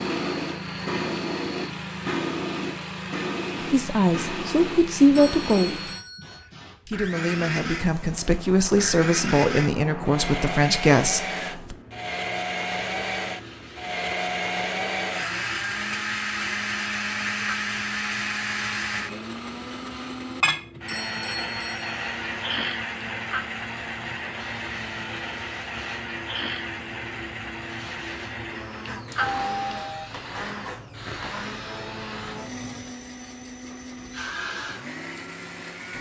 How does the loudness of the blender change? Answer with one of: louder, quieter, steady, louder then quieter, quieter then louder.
louder then quieter.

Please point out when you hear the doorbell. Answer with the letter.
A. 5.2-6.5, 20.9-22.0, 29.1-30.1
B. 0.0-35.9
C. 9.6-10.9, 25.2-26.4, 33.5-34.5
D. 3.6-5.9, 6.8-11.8
A.